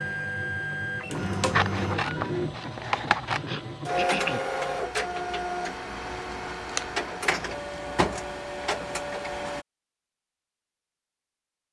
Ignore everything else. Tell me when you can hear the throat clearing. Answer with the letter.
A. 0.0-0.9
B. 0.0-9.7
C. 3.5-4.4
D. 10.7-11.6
C.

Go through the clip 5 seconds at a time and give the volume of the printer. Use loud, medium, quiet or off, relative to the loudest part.
loud, loud, off.